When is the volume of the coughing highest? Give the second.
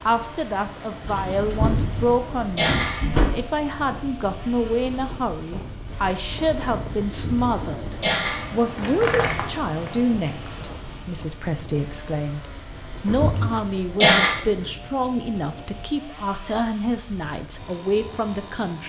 14 s.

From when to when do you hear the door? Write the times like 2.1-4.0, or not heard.
1.1-3.5, 8.8-9.9, 12.9-13.3.